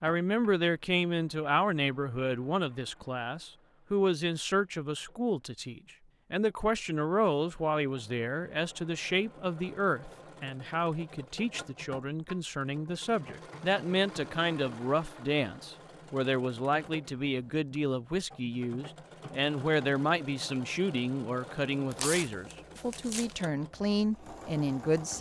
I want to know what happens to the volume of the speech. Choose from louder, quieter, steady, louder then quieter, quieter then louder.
steady.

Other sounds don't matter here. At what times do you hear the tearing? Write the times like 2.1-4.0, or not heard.
21.9-23.4.